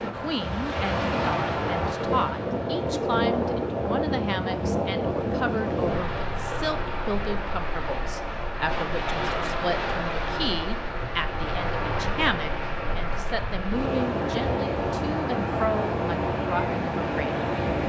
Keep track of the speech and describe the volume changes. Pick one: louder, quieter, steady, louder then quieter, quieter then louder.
steady.